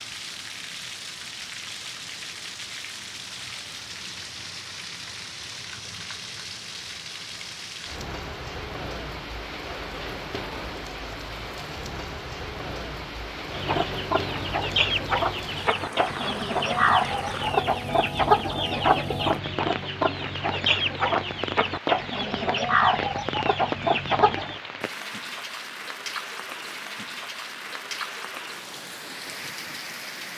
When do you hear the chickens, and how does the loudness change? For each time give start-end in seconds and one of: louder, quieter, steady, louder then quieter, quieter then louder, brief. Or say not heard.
13.5-24.6 steady.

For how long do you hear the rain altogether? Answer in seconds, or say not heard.
30 s.